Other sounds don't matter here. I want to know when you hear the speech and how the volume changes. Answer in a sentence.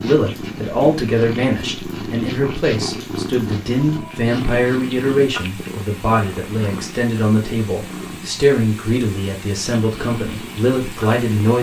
The speech can be heard from 0.0 to 11.5 s, at a steady volume.